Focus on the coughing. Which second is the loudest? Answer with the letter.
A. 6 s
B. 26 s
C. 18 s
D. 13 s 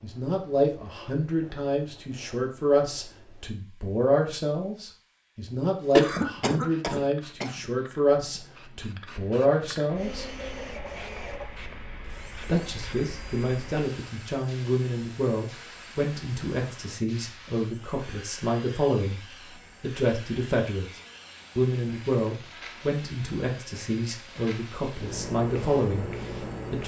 A.